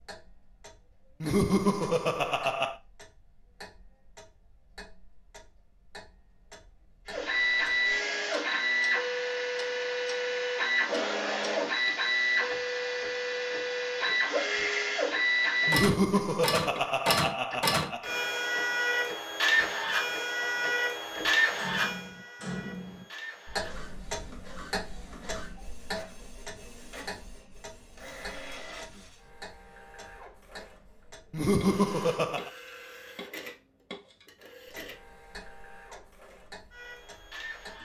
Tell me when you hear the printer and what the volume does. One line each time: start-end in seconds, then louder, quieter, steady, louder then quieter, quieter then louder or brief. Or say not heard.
7.0-37.8 quieter.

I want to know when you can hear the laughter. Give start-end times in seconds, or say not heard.
1.2-2.8, 15.7-18.1, 31.3-32.5.